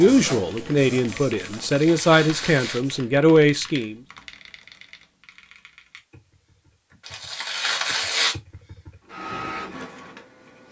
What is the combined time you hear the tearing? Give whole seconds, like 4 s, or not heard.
2 s.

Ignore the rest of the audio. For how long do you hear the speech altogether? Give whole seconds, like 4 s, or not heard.
4 s.